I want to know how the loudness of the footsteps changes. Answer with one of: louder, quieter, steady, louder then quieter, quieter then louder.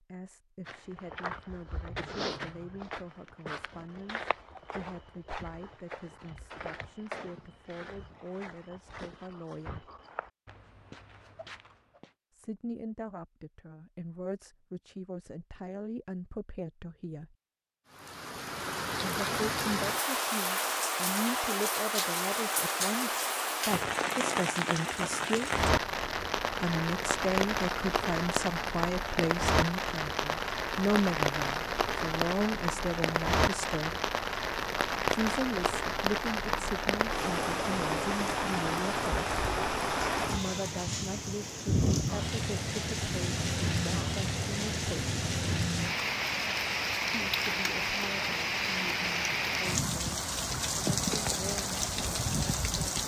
quieter.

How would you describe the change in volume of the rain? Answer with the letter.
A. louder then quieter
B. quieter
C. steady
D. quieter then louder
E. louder
C.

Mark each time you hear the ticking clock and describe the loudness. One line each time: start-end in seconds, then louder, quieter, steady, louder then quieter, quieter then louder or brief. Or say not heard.
not heard.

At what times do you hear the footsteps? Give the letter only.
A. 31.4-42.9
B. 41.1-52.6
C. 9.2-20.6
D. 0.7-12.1
D.